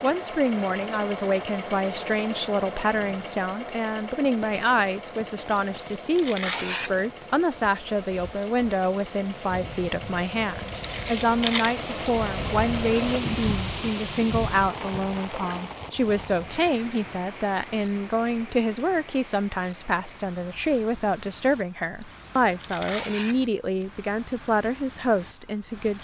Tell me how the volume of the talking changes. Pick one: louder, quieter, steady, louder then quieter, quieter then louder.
steady.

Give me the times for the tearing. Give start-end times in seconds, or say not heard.
5.4-7.0, 10.7-11.8, 21.9-23.9.